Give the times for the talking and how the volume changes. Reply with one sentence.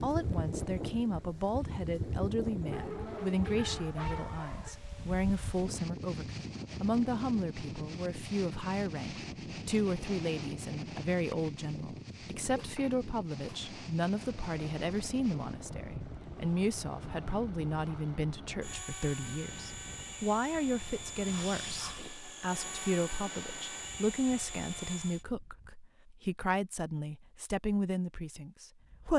You can hear the talking from 0.0 to 29.1 s, at a steady volume.